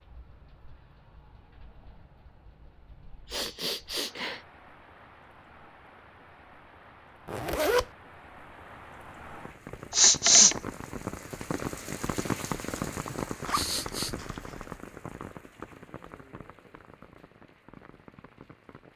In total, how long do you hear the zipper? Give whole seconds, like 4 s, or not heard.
2 s.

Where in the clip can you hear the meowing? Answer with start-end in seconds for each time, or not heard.
not heard.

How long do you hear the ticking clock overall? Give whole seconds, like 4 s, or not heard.
not heard.